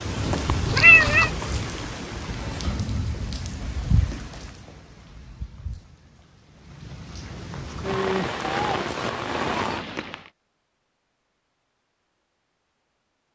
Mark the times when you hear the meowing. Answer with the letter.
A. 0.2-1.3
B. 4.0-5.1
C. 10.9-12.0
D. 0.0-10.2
A.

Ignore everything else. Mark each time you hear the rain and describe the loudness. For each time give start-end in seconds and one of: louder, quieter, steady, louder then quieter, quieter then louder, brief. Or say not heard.
0.0-10.2 quieter then louder.